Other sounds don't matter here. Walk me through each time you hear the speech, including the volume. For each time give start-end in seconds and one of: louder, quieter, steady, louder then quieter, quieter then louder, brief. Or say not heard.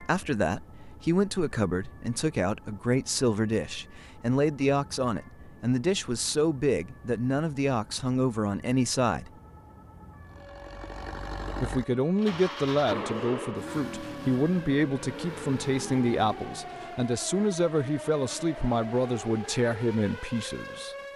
0.0-9.3 steady
11.6-20.9 steady.